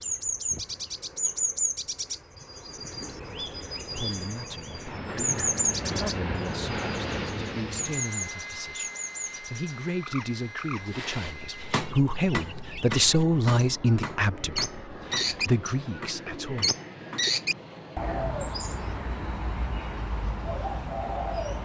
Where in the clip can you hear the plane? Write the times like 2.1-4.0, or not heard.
0.0-21.6.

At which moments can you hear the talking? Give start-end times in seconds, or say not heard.
4.0-16.7.